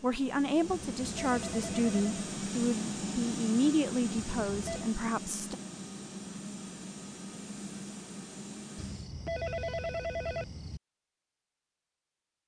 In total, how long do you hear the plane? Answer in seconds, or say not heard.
9 s.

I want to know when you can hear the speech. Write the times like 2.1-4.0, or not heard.
0.0-5.5.